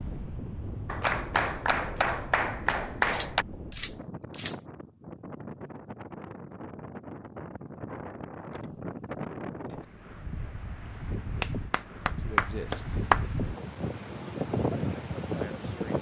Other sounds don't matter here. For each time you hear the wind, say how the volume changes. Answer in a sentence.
The wind can be heard from 0.0 to 15.9 s, getting louder.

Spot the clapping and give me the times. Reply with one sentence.
You can hear the clapping from 0.8 to 3.5 s and from 11.4 to 13.2 s.